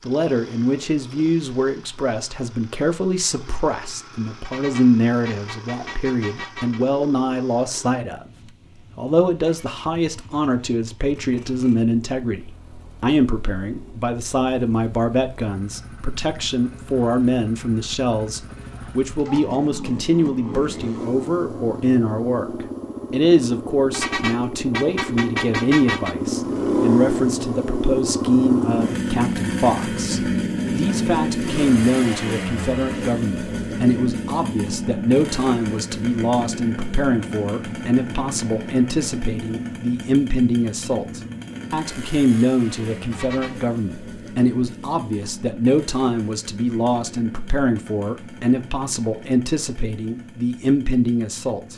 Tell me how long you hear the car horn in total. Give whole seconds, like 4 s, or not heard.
5 s.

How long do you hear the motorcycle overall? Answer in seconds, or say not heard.
52 s.